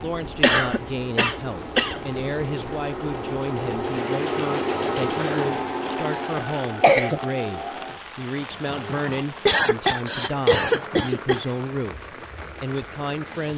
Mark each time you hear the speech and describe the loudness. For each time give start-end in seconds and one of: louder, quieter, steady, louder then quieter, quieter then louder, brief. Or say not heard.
0.0-13.5 steady.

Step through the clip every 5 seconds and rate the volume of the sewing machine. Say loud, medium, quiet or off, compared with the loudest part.
loud, loud, quiet.